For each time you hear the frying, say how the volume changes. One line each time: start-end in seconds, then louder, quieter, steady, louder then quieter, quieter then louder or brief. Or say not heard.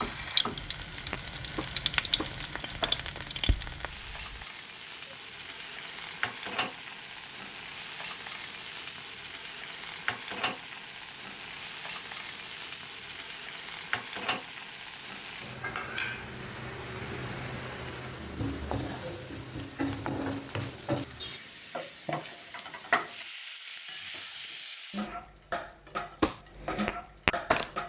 0.0-27.8 steady.